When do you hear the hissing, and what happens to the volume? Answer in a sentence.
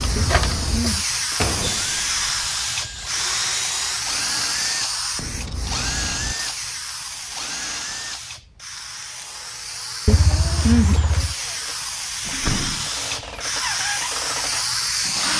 The hissing can be heard from 0.0 to 15.3 s, getting quieter then louder.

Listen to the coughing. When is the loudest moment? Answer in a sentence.
The volume of the coughing peaks at 11 seconds.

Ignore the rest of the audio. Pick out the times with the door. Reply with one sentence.
The door can be heard from 1.4 to 2.3 s and from 12.2 to 12.9 s.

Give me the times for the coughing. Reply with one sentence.
You can hear the coughing from 0.1 to 1.1 s and from 10.1 to 11.3 s.